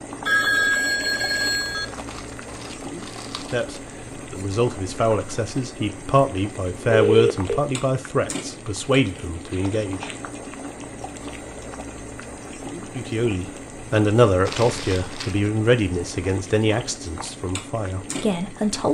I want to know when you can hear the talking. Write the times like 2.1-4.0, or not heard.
3.5-10.1, 12.9-18.9.